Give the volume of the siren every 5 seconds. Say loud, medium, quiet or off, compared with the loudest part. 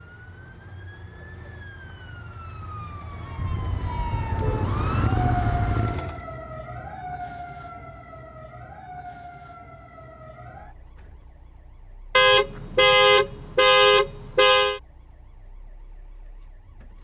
loud, loud, quiet, quiet.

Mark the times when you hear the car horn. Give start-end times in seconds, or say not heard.
3.4-4.7, 12.2-14.8.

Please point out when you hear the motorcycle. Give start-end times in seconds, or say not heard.
3.3-6.2.